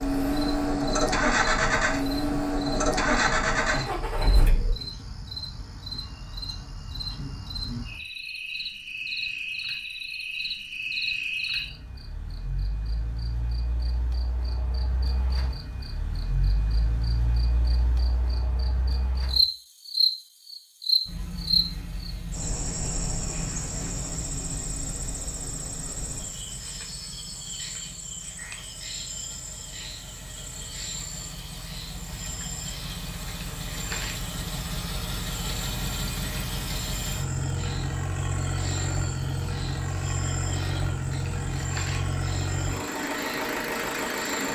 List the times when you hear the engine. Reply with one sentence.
The engine can be heard from 0.0 to 4.8 s and from 21.1 to 44.5 s.